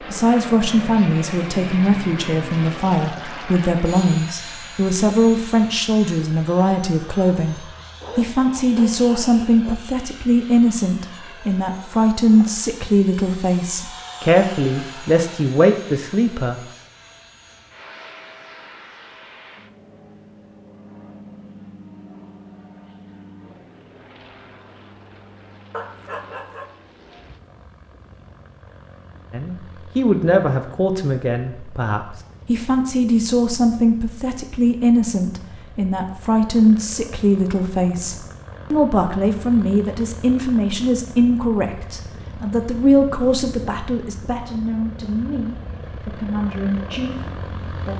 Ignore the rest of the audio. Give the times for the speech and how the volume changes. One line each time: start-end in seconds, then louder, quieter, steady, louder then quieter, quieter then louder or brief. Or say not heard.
0.1-16.6 steady
29.3-47.9 quieter.